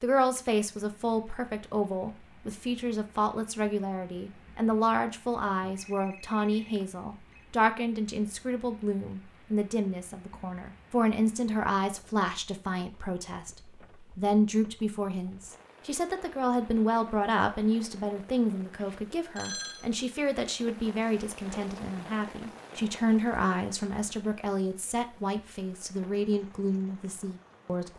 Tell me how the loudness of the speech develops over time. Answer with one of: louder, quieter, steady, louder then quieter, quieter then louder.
steady.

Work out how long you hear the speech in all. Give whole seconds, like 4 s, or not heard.
28 s.